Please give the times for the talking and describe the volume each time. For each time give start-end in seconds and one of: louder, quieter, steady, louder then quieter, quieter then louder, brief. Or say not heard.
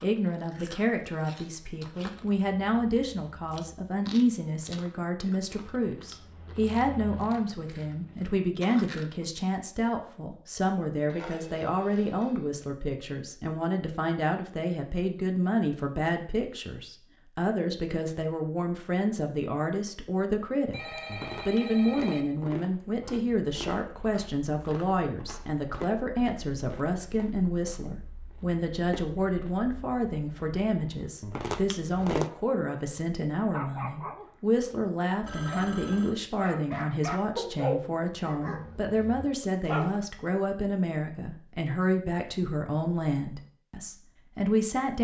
0.0-44.9 steady.